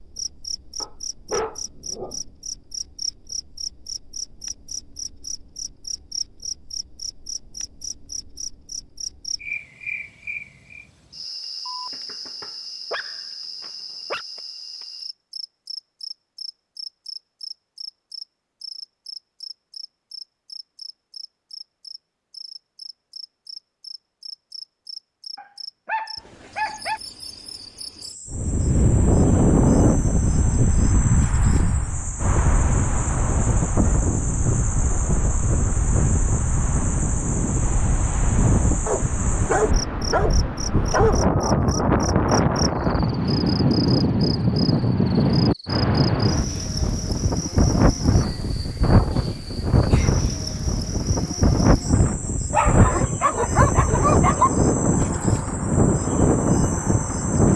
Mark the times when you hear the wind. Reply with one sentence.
The wind can be heard from 28.3 to 57.5 s.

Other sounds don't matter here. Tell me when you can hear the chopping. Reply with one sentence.
The chopping can't be heard in this clip.